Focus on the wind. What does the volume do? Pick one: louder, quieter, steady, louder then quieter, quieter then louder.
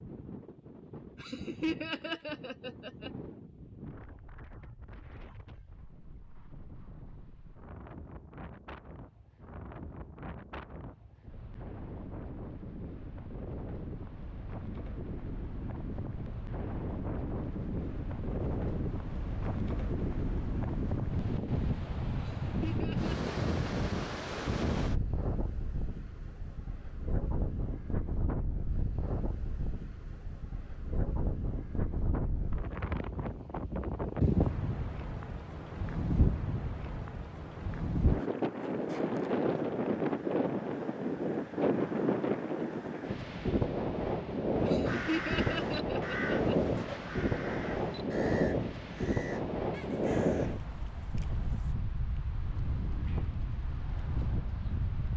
louder.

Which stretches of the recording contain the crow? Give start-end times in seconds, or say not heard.
44.9-51.8.